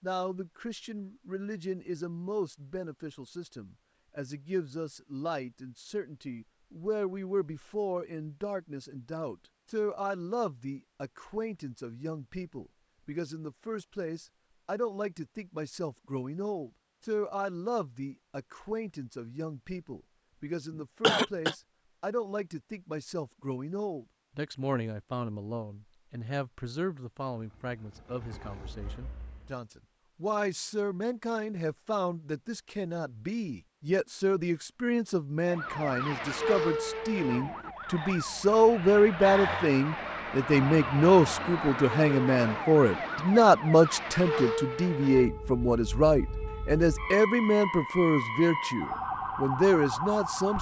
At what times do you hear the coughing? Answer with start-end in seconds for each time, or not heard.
20.7-21.6.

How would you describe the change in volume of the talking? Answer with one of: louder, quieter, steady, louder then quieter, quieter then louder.
louder.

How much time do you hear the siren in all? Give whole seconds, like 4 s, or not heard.
15 s.